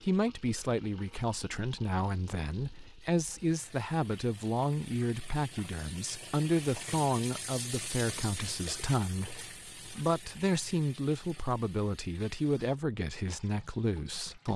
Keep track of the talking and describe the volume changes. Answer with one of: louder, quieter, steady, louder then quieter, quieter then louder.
steady.